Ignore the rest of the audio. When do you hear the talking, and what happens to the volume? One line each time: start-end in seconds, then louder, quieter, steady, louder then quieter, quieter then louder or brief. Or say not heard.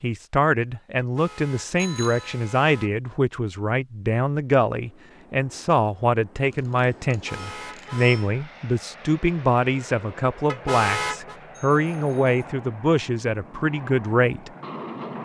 0.0-14.5 steady.